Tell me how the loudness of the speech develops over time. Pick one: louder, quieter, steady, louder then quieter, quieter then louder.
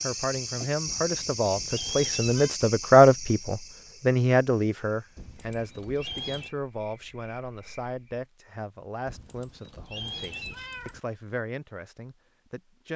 louder then quieter.